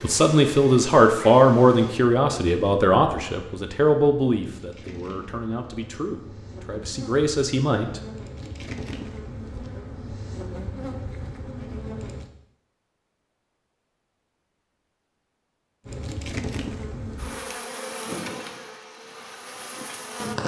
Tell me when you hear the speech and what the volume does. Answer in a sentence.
You can hear the speech from 0.0 to 8.0 s, getting quieter then louder.